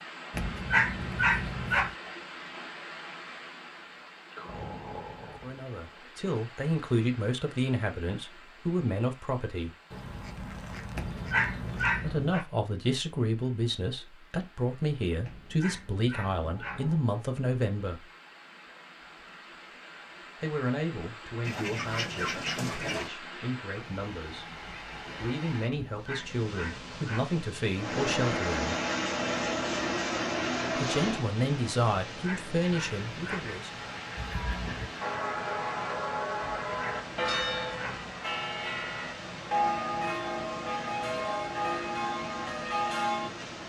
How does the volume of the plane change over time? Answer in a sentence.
The volume of the plane goes down.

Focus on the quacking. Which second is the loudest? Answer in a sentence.
The loudest moment of the quacking is at 22 seconds.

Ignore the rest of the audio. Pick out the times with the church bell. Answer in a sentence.
The church bell can be heard from 34.1 to 43.3 s.